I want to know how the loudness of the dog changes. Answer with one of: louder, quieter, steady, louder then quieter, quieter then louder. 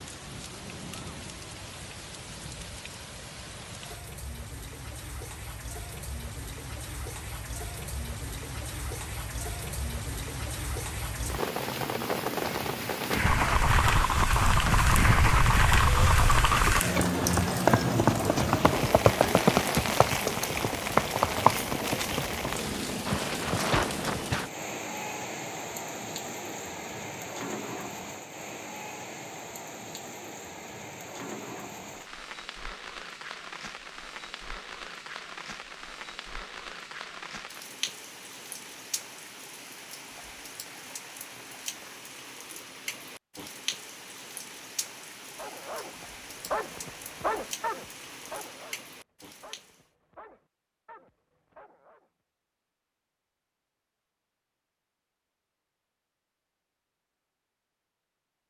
quieter.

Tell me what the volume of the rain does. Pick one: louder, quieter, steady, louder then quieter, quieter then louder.
louder then quieter.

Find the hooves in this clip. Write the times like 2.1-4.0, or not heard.
13.2-24.5.